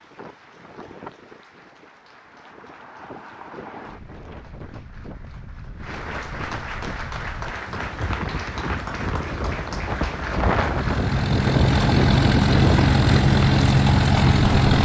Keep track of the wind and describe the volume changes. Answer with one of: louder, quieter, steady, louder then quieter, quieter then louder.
louder.